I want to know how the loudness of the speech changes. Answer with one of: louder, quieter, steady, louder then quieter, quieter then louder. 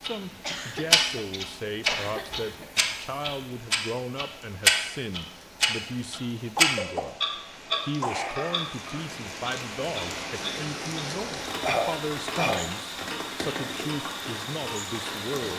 steady.